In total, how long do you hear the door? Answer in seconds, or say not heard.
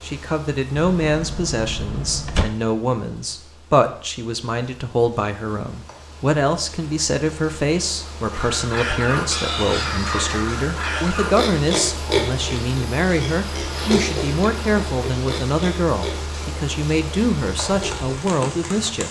2 s.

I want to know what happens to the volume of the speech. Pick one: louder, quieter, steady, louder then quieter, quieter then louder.
steady.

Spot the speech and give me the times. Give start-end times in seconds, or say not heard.
0.0-19.0.